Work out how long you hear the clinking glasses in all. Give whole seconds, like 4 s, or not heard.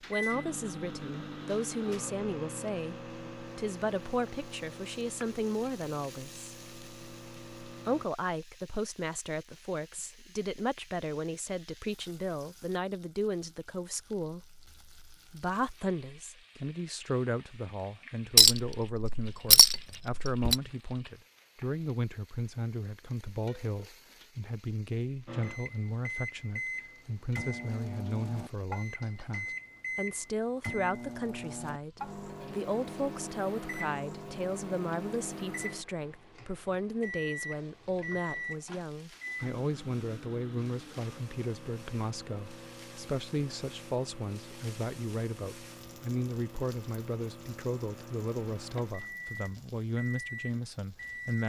2 s.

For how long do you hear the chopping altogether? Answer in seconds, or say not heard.
not heard.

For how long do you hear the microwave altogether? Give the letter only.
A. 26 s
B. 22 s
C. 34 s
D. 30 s
C.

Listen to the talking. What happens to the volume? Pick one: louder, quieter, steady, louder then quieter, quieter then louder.
steady.